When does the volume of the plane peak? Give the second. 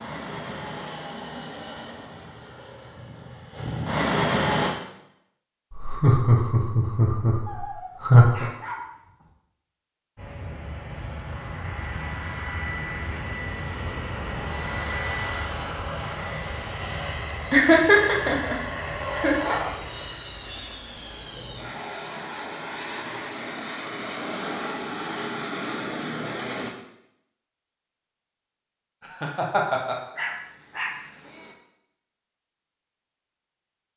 4 s.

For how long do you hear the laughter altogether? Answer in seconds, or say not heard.
6 s.